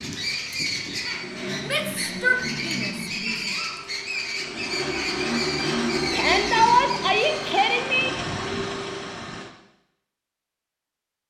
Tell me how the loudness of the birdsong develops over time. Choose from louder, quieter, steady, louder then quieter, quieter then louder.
steady.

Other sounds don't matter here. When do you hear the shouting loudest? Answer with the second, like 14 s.
7 s.